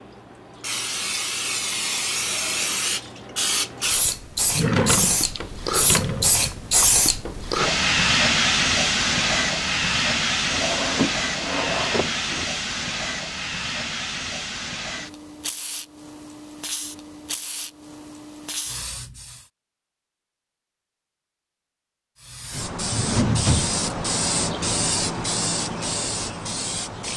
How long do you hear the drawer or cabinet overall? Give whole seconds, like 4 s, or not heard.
5 s.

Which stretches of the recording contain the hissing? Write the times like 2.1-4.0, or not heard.
0.0-19.5, 22.2-27.1.